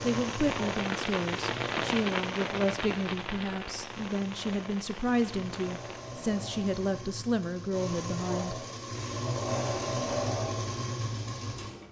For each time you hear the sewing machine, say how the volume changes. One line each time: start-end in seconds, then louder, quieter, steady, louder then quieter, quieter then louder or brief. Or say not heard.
0.0-11.8 quieter then louder.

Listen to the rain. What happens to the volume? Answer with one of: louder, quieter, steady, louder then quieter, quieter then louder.
quieter.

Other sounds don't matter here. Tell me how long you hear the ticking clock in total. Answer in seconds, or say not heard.
not heard.